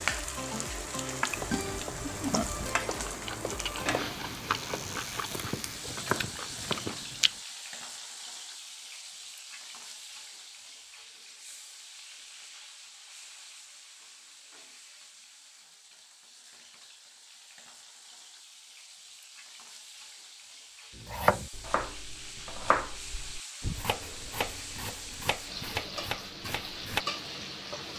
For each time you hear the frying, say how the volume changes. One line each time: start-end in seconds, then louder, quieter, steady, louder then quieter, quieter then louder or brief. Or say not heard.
0.0-27.9 quieter then louder.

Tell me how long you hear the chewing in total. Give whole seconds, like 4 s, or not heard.
6 s.